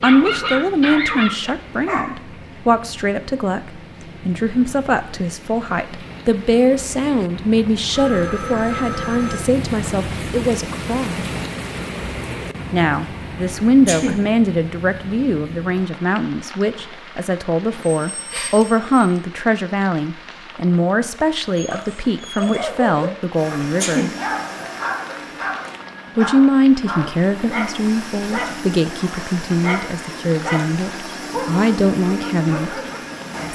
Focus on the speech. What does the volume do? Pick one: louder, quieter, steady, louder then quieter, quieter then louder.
steady.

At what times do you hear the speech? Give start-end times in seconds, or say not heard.
0.0-11.3, 12.7-24.1, 26.1-32.8.